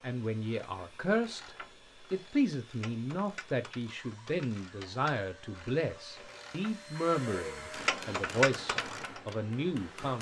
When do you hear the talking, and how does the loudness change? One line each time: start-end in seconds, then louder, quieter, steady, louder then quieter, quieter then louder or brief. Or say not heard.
0.0-10.1 steady.